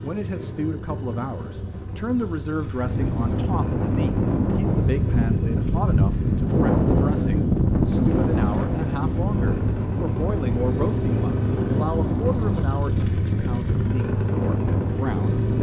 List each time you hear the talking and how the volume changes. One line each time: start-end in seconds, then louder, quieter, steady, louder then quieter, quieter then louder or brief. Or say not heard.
0.0-15.5 steady.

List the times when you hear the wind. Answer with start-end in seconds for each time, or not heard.
2.7-15.5.